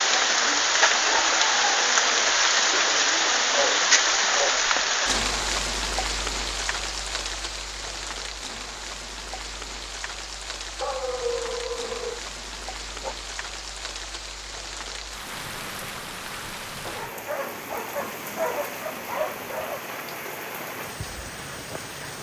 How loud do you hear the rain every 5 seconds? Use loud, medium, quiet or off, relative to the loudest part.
loud, medium, quiet, quiet, quiet.